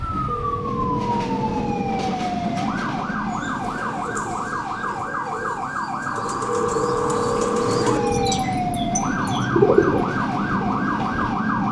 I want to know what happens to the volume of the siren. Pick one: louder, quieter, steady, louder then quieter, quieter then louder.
steady.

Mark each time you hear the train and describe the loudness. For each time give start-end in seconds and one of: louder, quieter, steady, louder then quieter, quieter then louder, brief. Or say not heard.
0.0-11.6 quieter then louder.